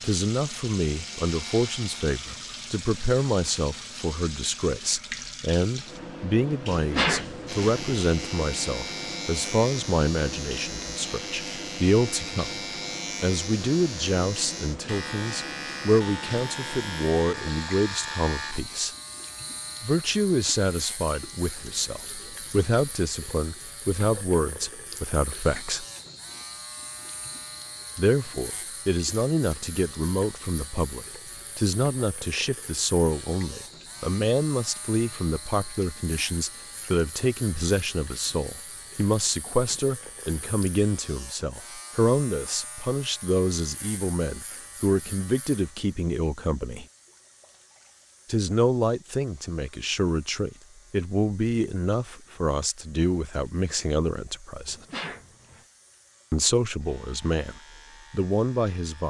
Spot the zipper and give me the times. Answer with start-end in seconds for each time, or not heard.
not heard.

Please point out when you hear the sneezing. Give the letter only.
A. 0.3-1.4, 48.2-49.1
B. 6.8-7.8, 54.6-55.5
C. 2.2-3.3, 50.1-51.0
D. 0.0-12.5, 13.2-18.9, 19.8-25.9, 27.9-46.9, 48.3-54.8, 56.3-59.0
B.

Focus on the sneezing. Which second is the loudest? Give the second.
7 s.